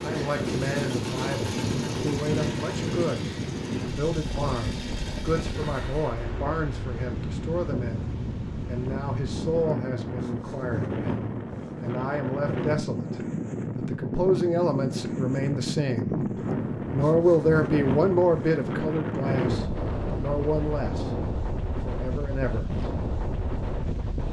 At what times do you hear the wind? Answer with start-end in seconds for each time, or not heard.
0.0-24.2.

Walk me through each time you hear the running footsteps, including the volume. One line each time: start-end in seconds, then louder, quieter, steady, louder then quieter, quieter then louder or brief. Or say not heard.
not heard.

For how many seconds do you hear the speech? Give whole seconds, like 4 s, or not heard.
22 s.